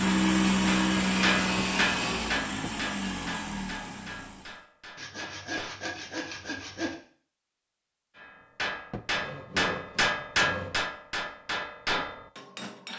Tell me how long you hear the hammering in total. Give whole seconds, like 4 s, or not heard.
10 s.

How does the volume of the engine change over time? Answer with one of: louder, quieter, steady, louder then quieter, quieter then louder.
quieter.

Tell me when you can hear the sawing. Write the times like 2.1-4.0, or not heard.
0.9-2.4, 5.0-7.0, 9.2-10.9.